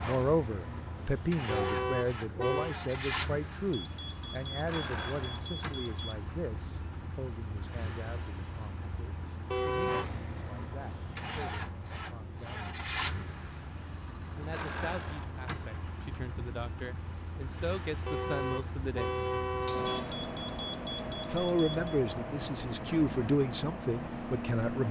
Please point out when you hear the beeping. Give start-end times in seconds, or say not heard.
3.7-6.2, 20.0-21.9.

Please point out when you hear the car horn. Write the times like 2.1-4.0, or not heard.
1.4-2.8, 9.5-10.1, 18.1-20.2.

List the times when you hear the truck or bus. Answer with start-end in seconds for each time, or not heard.
0.0-24.8.